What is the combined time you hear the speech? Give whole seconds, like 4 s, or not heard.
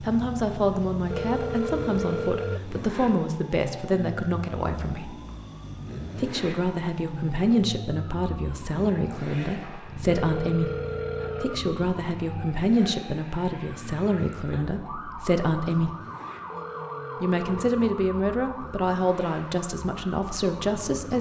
18 s.